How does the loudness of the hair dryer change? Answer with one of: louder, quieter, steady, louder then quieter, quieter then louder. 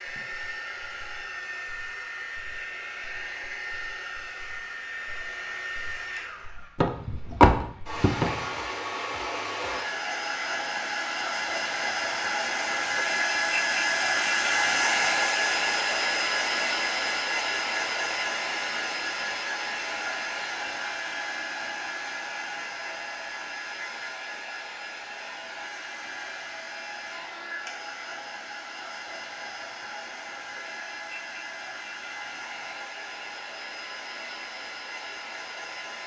louder then quieter.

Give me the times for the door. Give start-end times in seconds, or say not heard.
6.8-8.4.